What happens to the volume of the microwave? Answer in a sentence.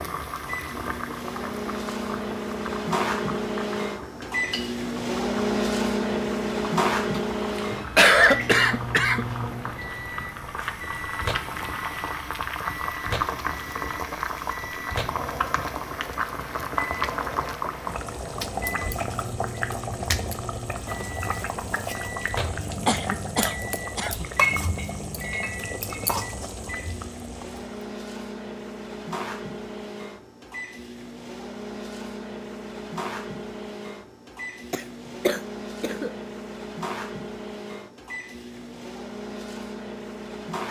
The loudness of the microwave goes down.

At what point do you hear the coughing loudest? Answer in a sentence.
The volume of the coughing peaks at 8 seconds.